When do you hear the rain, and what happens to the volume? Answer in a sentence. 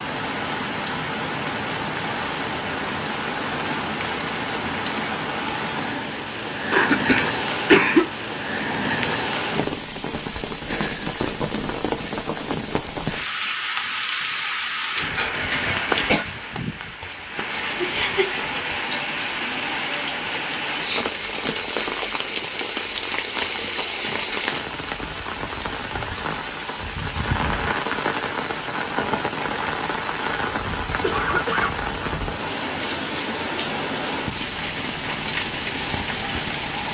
The rain can be heard from 0.0 to 36.9 s, at a steady volume.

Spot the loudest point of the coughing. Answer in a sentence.
The volume of the coughing peaks at 8 seconds.